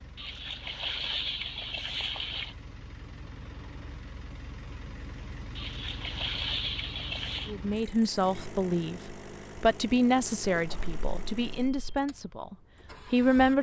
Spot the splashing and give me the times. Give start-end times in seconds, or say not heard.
0.1-2.5, 5.5-7.5, 10.5-11.9.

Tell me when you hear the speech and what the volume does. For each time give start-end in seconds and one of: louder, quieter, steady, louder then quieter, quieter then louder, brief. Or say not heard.
7.5-13.5 quieter.